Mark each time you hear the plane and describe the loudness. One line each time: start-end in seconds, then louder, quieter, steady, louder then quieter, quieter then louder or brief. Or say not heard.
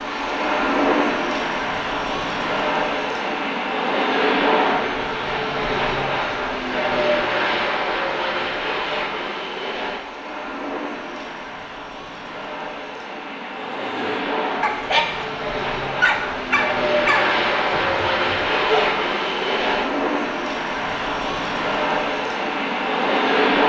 0.0-23.6 quieter then louder.